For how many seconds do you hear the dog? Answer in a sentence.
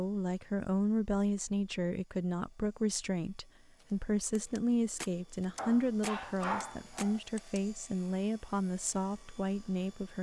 You can hear the dog for 2 seconds altogether.